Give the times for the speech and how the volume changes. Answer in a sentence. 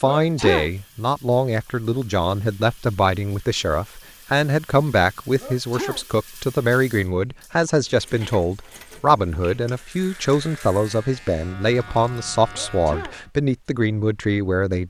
You can hear the speech from 0.0 to 14.8 s, at a steady volume.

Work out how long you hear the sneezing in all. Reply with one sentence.
You can hear the sneezing for 2 seconds altogether.